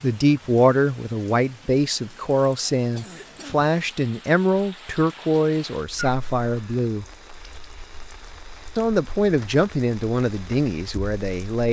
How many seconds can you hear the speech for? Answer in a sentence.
The speech can be heard for 10 seconds in total.